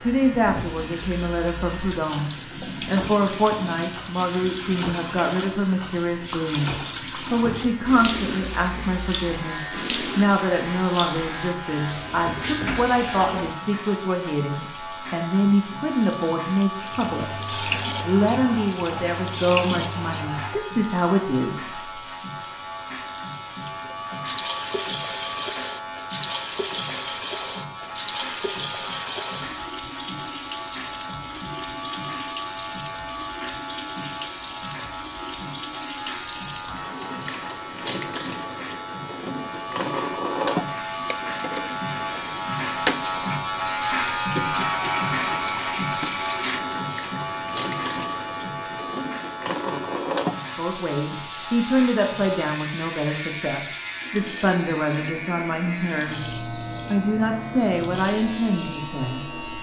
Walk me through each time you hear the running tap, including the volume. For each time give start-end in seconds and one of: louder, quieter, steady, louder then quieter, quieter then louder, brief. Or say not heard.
0.0-59.5 steady.